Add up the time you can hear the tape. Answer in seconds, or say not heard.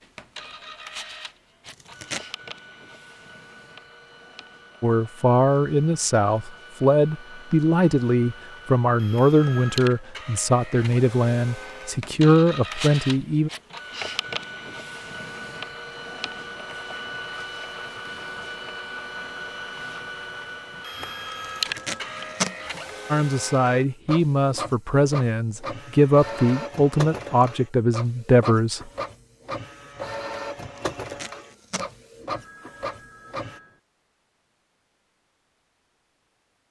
3 s.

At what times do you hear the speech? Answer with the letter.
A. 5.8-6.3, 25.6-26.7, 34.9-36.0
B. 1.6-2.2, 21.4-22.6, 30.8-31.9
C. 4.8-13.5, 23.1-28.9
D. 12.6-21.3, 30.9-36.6
C.